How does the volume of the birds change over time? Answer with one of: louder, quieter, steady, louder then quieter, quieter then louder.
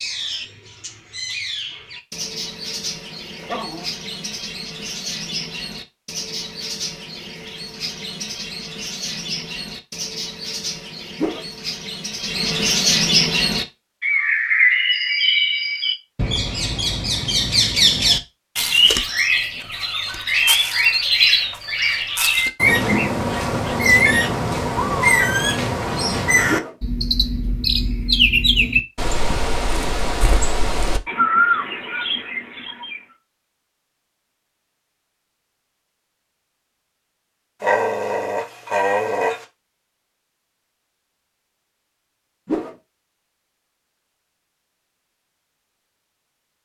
louder.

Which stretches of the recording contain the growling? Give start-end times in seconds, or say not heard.
3.4-3.9, 37.6-39.5.